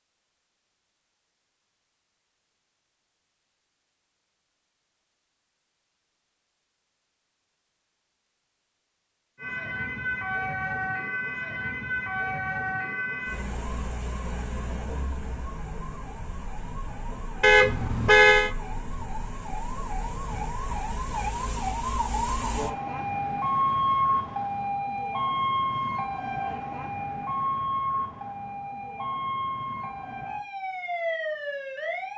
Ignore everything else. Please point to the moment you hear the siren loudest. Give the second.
24 s.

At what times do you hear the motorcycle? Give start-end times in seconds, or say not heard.
not heard.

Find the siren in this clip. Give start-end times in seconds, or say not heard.
9.3-32.1.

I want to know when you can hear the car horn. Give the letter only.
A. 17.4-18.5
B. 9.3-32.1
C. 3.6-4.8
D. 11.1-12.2
A.